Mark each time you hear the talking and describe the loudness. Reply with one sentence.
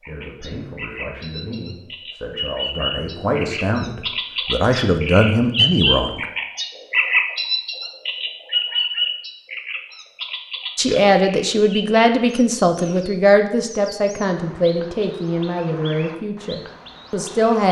You can hear the talking from 0.0 to 6.2 s, getting louder; and from 10.8 to 17.6 s, getting quieter.